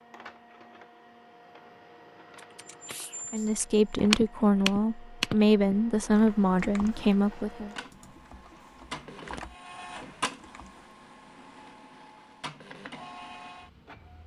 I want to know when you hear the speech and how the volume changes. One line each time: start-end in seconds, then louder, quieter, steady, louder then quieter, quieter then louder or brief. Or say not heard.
3.3-7.7 steady.